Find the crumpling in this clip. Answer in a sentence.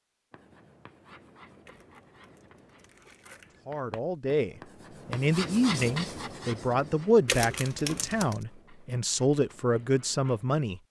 The crumpling can be heard from 1.6 to 3.6 s and from 7.2 to 8.4 s.